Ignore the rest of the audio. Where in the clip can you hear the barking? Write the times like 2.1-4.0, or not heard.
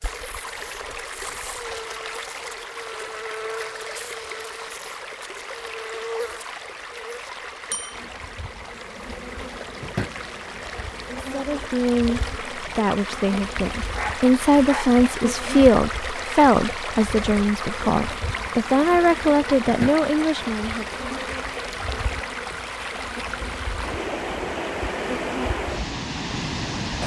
13.9-14.9.